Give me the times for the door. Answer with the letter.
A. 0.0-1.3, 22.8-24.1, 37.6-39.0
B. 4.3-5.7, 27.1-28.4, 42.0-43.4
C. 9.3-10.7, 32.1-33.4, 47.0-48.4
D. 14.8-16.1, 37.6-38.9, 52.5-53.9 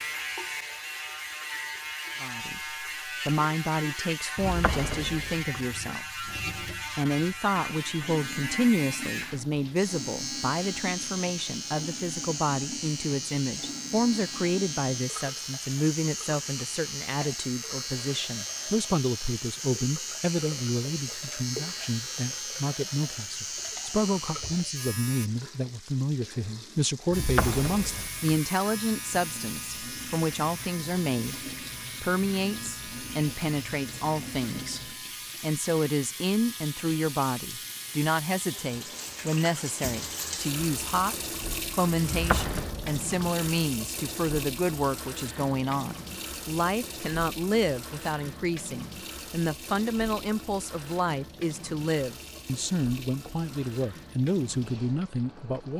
B.